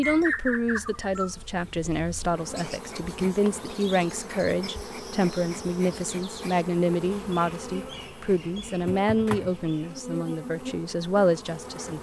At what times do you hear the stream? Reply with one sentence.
You can't hear the stream here.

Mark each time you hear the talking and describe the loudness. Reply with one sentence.
You can hear the talking from 0.0 to 11.9 s, at a steady volume.